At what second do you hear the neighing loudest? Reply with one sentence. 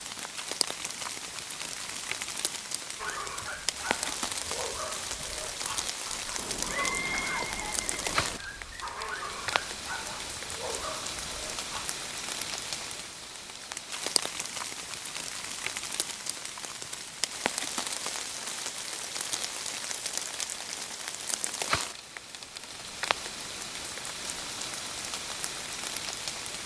The volume of the neighing peaks at 7 seconds.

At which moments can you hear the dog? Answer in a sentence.
You can hear the dog from 3.0 to 11.8 s.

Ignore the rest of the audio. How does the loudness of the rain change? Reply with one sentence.
The loudness of the rain stays about the same.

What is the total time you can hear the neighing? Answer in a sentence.
You can hear the neighing for 2 seconds altogether.